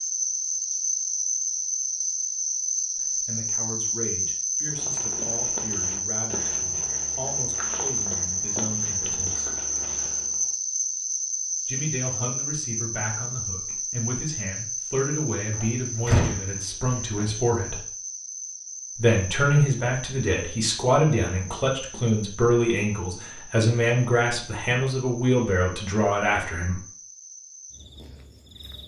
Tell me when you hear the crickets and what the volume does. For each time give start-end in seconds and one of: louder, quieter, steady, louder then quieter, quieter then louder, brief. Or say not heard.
0.0-28.8 quieter.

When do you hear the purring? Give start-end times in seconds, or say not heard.
not heard.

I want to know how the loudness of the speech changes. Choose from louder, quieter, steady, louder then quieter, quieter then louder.
louder.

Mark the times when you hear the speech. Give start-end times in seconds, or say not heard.
3.0-9.5, 11.7-17.8, 18.9-26.8.